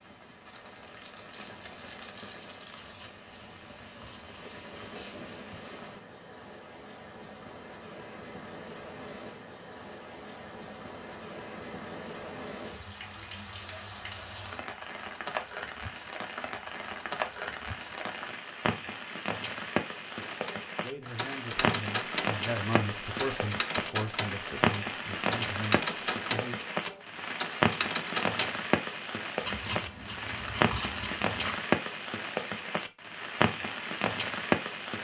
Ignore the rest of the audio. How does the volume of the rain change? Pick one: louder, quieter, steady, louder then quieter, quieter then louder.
louder.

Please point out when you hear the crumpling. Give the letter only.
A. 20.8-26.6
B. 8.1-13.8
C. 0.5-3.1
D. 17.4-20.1
C.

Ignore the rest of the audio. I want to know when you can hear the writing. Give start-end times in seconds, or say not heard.
2.8-5.7, 29.4-31.6.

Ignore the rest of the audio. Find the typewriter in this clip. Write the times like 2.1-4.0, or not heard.
20.2-28.6.